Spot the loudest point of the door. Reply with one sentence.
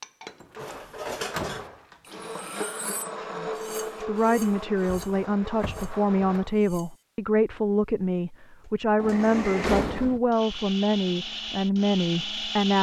The volume of the door peaks at 10 seconds.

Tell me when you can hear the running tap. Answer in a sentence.
The running tap can't be heard in this clip.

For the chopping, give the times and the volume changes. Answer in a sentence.
The chopping can't be heard in this clip.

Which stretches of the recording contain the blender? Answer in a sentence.
The blender can be heard from 0.0 to 6.5 s and from 8.6 to 12.7 s.